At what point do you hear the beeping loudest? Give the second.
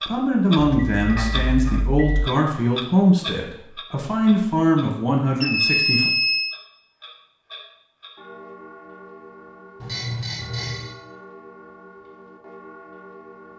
6 s.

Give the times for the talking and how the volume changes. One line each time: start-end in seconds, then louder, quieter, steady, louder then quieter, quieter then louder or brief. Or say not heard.
0.1-6.1 steady.